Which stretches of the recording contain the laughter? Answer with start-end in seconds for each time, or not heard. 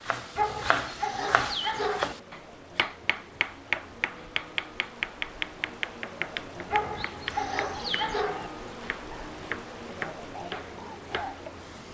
not heard.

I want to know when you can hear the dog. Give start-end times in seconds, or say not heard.
0.3-2.1, 6.7-8.5.